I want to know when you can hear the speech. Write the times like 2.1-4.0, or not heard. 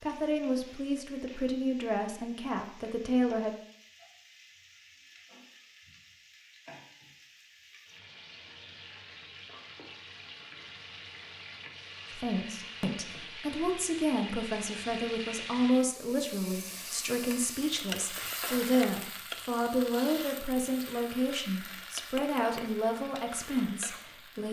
0.0-3.5, 12.1-24.4.